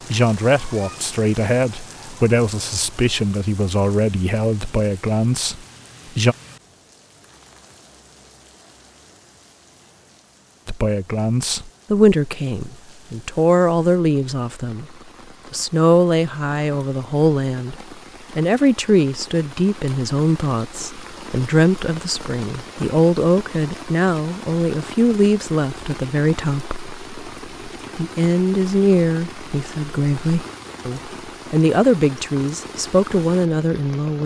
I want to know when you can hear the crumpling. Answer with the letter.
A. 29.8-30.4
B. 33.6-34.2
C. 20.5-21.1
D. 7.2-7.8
D.